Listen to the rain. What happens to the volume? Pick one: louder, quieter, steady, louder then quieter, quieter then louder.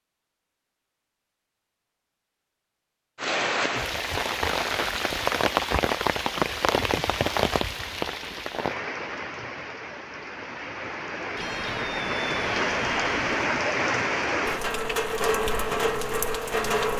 quieter then louder.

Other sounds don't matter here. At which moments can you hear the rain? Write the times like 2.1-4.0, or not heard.
3.1-16.9.